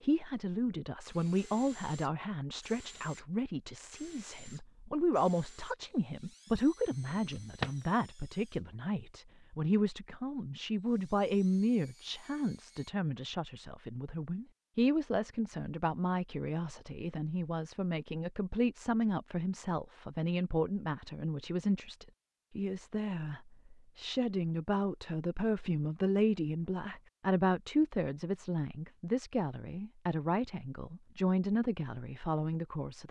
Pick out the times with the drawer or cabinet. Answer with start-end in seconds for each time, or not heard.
7.0-7.8.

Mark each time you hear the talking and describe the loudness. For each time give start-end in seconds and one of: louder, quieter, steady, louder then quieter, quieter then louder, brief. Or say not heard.
0.0-33.0 steady.